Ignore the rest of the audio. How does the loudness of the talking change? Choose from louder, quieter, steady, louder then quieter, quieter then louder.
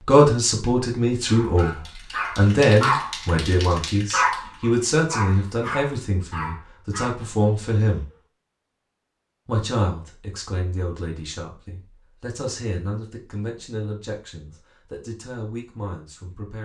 quieter.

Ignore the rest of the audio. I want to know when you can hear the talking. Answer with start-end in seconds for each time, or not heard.
0.1-8.1, 9.4-16.5.